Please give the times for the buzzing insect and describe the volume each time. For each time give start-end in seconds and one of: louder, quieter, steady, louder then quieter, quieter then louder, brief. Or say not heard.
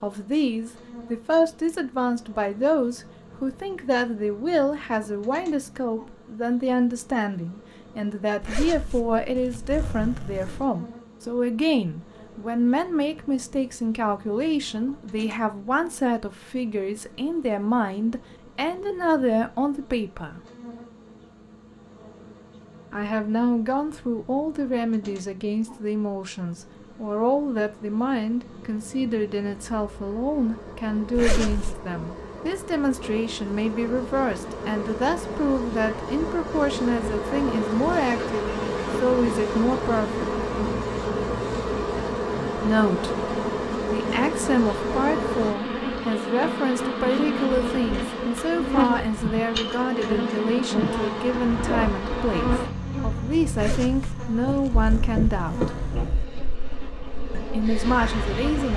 0.0-58.7 louder.